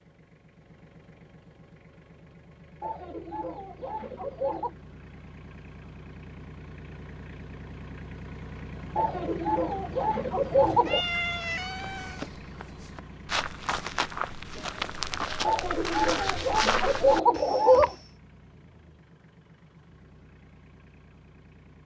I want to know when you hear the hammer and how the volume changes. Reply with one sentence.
The hammer can't be heard in this clip.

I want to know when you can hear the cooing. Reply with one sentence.
You can hear the cooing from 2.8 to 4.8 s, from 8.9 to 11.1 s and from 15.4 to 17.9 s.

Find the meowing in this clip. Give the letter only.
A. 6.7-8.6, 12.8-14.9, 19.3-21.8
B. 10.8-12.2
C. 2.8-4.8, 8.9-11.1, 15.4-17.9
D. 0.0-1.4
B.